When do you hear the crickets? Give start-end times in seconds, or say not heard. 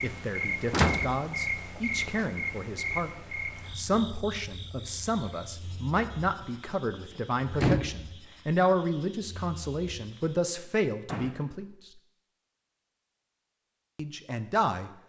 0.0-10.4.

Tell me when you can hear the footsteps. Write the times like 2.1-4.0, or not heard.
not heard.